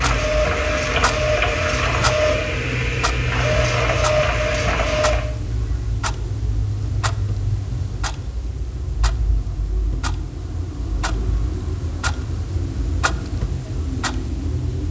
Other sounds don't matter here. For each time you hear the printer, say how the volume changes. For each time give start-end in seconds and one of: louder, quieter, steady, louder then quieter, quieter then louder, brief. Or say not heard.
0.0-5.3 steady.